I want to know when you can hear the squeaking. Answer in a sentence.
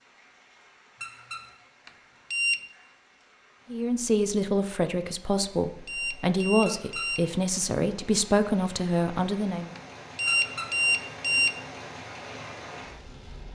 You can hear the squeaking from 1.0 to 1.4 s, from 6.7 to 7.1 s and from 10.2 to 10.7 s.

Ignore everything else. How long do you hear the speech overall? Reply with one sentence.
You can hear the speech for 6 seconds altogether.